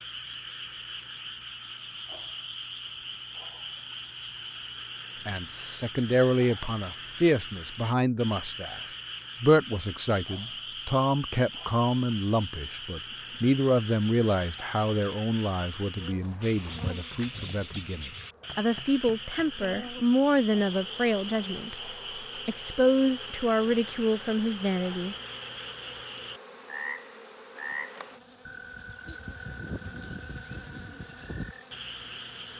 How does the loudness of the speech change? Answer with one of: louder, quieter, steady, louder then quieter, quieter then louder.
steady.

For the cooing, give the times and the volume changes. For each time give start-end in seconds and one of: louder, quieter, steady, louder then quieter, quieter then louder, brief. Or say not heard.
not heard.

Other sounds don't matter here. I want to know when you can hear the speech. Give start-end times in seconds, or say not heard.
5.2-8.8, 9.4-25.1.